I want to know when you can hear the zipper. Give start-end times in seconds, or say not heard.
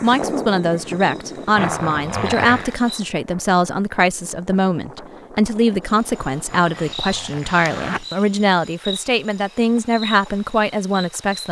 1.6-2.8, 6.5-8.1.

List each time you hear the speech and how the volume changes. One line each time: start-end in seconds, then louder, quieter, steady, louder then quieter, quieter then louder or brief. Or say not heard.
0.0-11.4 steady.